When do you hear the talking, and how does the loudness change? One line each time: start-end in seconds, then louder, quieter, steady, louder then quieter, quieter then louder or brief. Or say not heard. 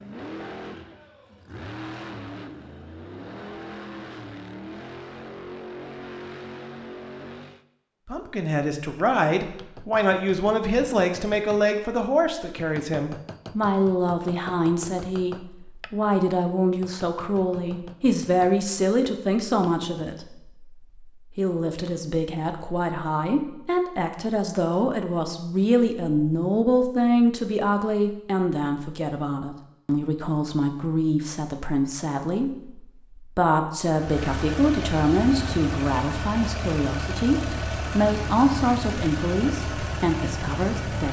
8.1-41.0 steady.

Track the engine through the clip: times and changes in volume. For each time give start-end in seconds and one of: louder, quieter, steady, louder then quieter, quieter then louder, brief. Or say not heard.
0.0-7.7 steady
34.0-41.0 steady.